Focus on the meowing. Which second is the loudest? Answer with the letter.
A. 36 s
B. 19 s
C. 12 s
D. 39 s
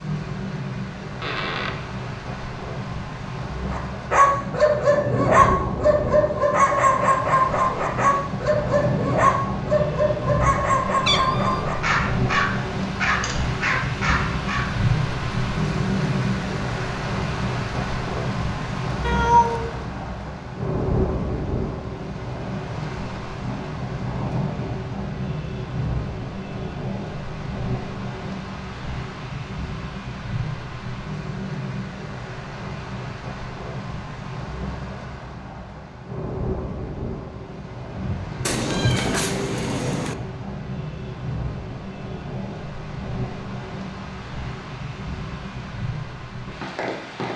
B.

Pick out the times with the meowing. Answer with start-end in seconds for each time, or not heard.
11.1-11.7, 19.0-19.8, 38.5-40.1.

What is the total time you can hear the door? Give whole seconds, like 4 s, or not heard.
2 s.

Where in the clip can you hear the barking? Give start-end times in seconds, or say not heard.
3.6-14.7.